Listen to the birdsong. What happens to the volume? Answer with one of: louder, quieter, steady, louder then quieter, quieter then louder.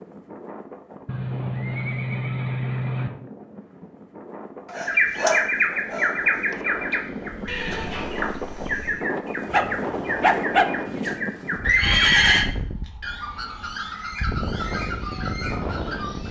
quieter.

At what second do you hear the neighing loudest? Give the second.
12 s.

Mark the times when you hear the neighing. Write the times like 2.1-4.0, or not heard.
1.1-3.1, 7.5-9.0, 11.6-12.4.